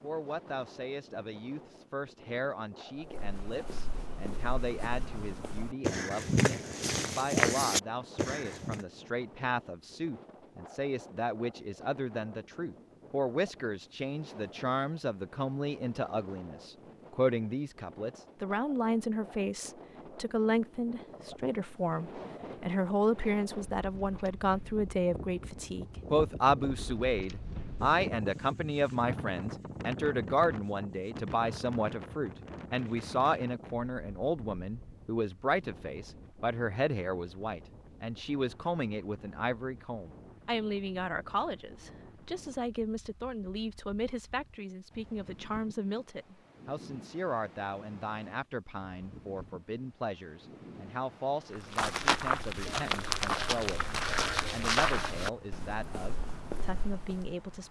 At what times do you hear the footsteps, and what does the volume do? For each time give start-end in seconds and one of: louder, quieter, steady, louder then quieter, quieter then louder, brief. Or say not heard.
3.0-8.8 louder
51.5-57.4 quieter.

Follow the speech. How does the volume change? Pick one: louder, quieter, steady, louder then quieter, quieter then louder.
louder then quieter.